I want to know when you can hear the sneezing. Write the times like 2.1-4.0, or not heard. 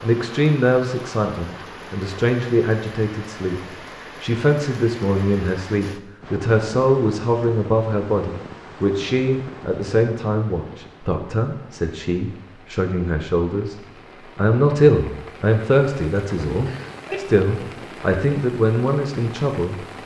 16.6-17.2.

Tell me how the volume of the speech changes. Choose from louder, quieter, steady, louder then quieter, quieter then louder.
steady.